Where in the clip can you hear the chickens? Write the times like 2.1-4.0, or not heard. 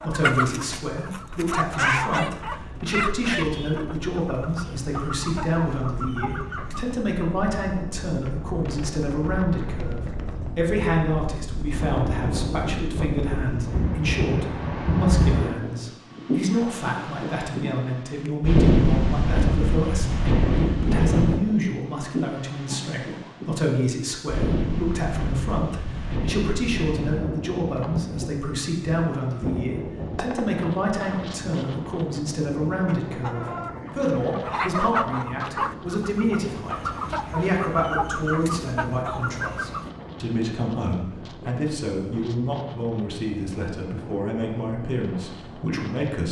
0.0-7.0, 32.9-39.9.